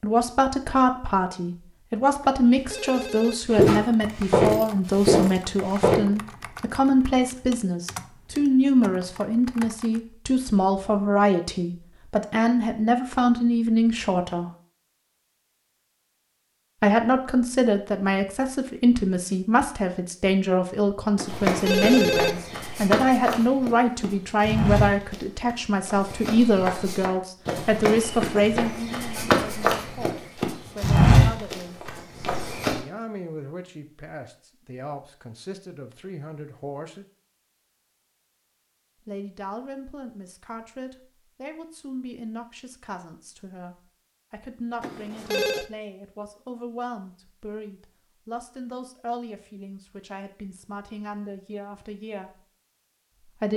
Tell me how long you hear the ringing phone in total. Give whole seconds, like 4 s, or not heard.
3 s.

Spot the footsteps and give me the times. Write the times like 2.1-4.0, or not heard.
3.5-6.0, 21.2-32.8.